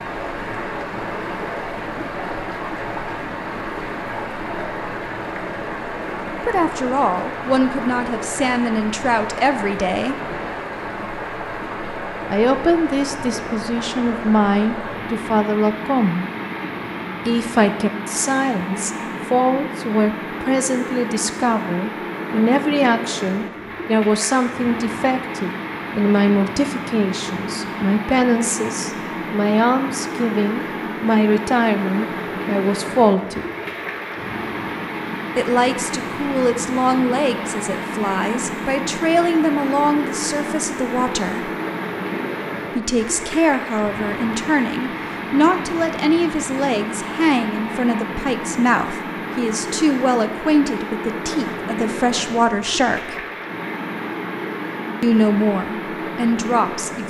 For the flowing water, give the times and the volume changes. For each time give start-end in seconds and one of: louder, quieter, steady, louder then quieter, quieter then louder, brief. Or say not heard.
0.0-57.0 steady.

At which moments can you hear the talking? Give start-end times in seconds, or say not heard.
6.4-10.2, 12.3-16.2, 17.2-33.5, 35.4-41.5, 42.8-53.2, 55.0-57.0.